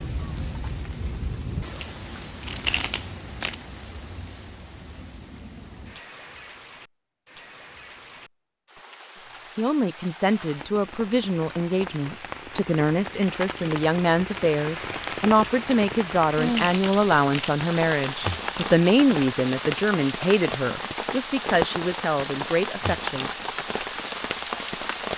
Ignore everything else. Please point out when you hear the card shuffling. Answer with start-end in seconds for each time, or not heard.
2.4-3.5, 16.4-17.6.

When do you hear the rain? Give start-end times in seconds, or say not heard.
0.0-25.1.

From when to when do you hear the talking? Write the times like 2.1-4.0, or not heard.
9.6-23.3.